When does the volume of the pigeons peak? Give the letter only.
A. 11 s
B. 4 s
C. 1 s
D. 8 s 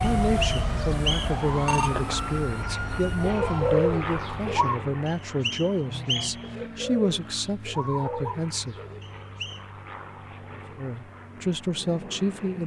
B.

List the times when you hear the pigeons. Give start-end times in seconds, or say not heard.
3.2-4.8, 6.4-9.0.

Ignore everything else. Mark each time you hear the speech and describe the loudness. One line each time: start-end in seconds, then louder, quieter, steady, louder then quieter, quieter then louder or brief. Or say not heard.
0.0-8.8 steady
10.6-12.6 brief.